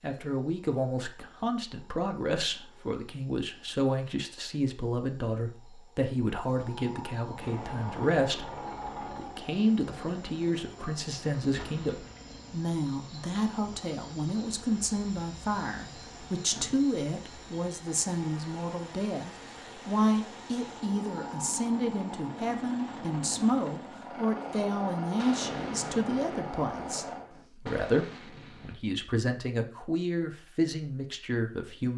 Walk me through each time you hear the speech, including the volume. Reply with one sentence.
You can hear the speech from 0.0 to 31.9 s, at a steady volume.